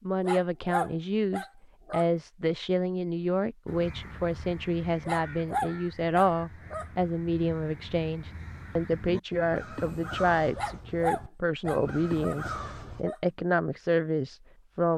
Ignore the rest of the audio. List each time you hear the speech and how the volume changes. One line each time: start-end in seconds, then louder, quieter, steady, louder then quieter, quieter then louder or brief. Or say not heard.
0.0-14.9 steady.